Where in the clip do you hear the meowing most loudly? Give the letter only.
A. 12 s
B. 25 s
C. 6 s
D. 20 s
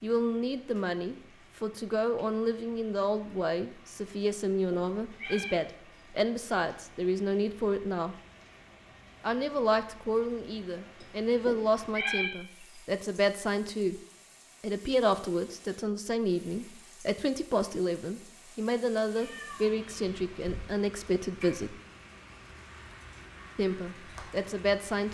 A.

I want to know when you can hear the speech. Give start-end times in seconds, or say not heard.
0.0-8.2, 9.2-13.9, 14.6-21.8, 23.6-25.0.